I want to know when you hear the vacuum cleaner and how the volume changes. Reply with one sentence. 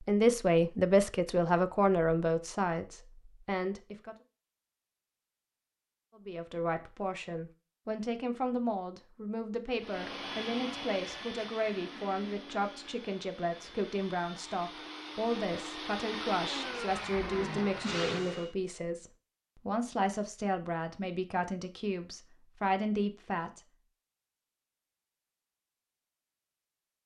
You can hear the vacuum cleaner from 9.8 to 18.6 s, getting quieter then louder.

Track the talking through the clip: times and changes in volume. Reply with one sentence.
The talking can be heard from 0.0 to 4.2 s, getting quieter; and from 6.2 to 23.6 s, at a steady volume.